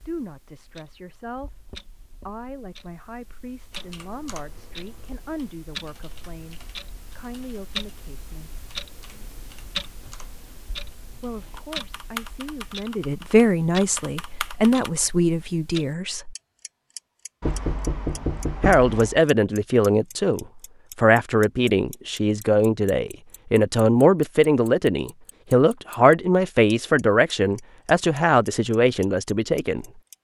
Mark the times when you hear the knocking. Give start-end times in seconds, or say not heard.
17.4-19.2.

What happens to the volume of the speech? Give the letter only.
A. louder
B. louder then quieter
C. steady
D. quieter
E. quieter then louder
A.